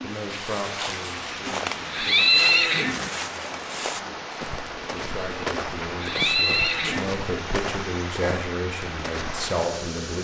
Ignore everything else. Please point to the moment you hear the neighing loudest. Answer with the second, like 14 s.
2 s.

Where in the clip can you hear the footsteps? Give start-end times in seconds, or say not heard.
0.1-9.7.